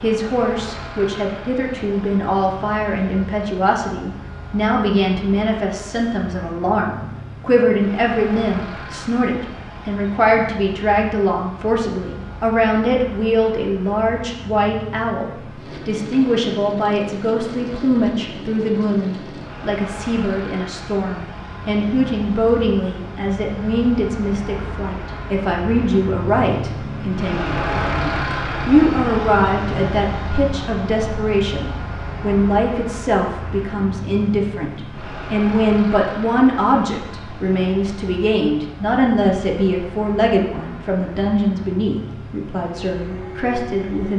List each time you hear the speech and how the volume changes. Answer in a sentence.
You can hear the speech from 0.0 to 44.1 s, at a steady volume.